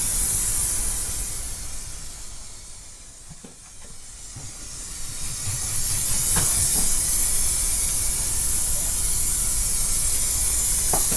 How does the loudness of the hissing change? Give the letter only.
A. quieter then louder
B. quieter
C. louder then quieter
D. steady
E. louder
A.